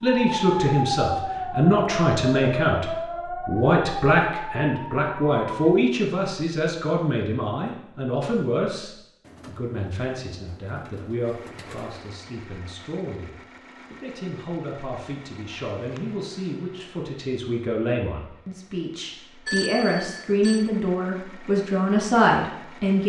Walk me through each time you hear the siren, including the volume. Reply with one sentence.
The siren can be heard from 0.0 to 5.8 s, getting quieter.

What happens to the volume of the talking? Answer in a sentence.
The volume of the talking goes down, then up.